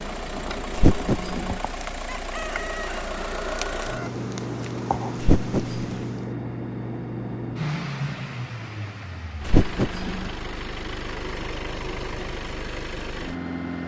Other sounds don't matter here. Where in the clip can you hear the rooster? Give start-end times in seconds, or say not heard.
2.0-4.1.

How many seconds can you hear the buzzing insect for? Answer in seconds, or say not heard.
6 s.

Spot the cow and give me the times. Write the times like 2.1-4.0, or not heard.
0.8-1.6, 5.2-6.0, 9.4-10.3.